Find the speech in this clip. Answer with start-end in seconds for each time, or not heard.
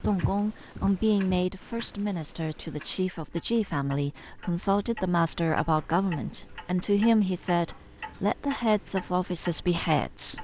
0.0-10.3.